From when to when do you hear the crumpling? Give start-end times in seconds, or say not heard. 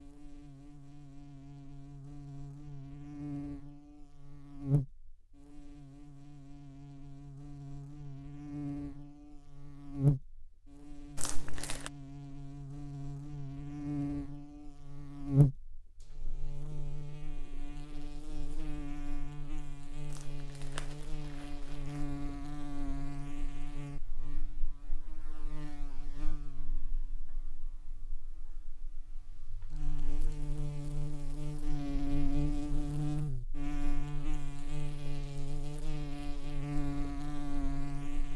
11.2-11.9, 20.1-22.0.